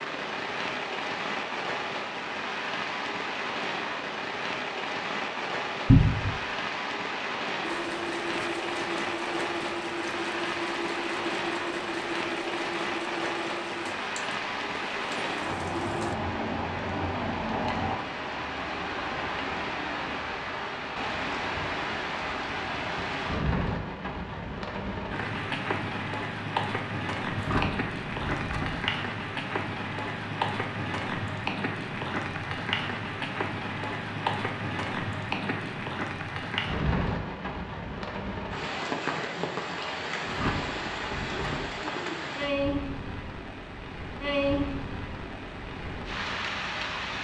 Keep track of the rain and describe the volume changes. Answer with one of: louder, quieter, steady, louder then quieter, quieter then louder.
steady.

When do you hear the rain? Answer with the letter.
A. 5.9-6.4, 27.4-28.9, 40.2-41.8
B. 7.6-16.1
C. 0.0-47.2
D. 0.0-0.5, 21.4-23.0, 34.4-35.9
C.